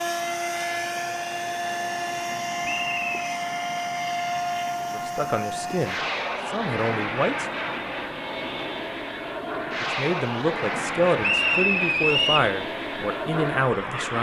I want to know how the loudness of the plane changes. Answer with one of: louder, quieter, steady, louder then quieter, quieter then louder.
steady.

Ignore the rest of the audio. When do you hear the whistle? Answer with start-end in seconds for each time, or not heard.
2.6-3.1, 11.2-12.5.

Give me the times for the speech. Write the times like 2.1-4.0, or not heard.
4.9-7.6, 9.8-14.1.